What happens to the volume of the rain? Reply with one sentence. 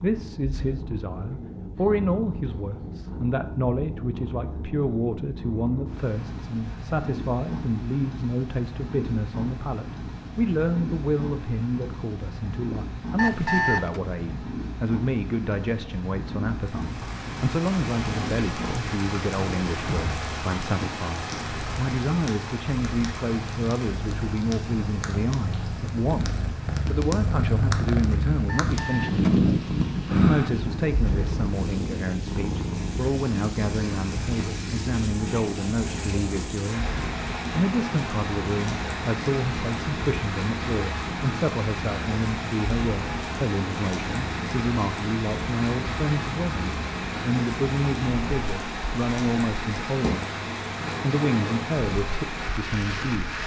The loudness of the rain goes down, then up.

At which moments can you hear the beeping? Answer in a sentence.
You can hear the beeping from 13.2 to 14.0 s and from 28.4 to 30.5 s.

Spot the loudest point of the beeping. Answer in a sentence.
The loudest moment of the beeping is at 14 seconds.